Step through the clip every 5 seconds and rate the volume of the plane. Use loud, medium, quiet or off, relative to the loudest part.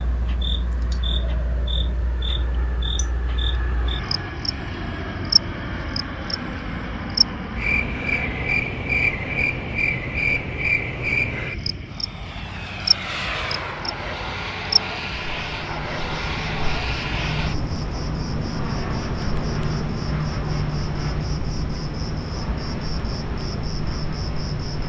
medium, loud, loud, loud, loud.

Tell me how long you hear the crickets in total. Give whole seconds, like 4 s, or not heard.
25 s.